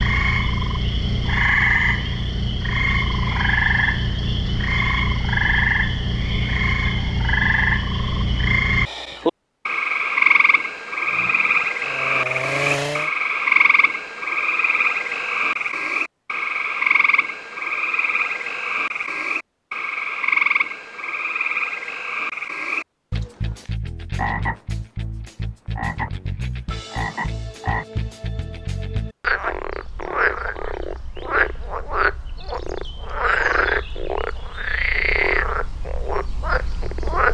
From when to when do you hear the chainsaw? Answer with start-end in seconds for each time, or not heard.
11.1-13.1.